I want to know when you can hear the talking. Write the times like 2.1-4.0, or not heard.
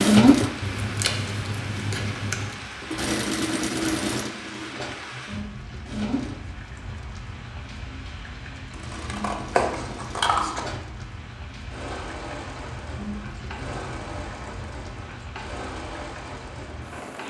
not heard.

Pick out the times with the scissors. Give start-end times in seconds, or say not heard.
0.6-2.5, 8.7-10.6.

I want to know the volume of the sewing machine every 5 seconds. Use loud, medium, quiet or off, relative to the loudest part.
loud, quiet, quiet, quiet.